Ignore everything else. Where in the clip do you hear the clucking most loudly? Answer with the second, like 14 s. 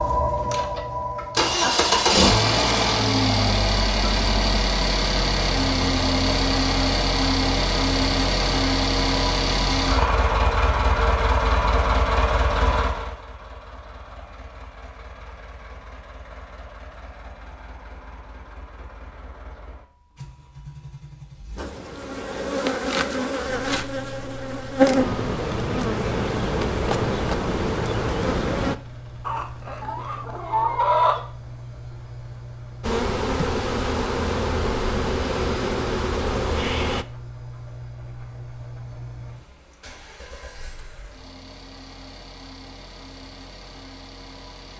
31 s.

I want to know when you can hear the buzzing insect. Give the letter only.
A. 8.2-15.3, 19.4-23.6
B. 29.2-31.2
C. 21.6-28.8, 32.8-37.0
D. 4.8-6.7
C.